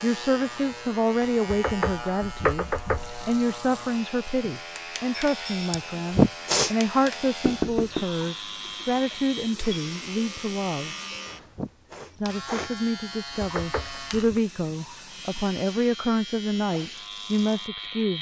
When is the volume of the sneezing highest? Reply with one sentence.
The loudest moment of the sneezing is at 6 seconds.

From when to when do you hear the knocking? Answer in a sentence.
The knocking can be heard from 1.5 to 3.3 s, from 7.5 to 8.1 s and from 13.4 to 14.4 s.